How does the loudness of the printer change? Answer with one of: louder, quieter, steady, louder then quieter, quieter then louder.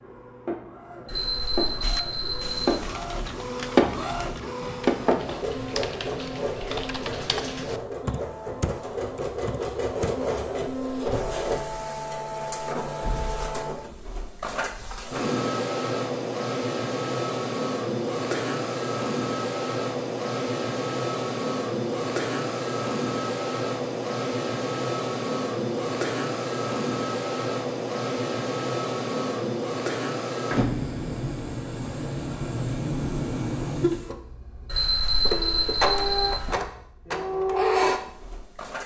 steady.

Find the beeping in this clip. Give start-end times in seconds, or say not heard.
1.1-3.0, 34.6-36.5.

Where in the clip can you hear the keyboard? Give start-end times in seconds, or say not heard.
1.8-10.2.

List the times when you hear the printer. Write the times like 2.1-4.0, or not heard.
0.0-38.8.